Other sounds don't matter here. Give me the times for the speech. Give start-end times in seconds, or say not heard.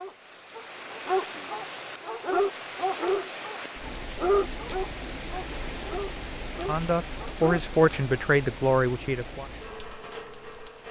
6.7-9.4.